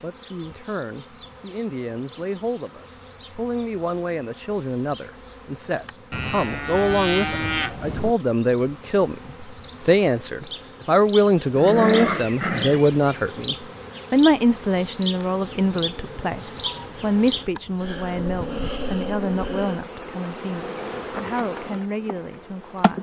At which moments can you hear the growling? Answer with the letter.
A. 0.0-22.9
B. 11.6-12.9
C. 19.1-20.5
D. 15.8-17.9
B.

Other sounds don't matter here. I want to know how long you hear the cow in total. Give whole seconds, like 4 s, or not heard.
2 s.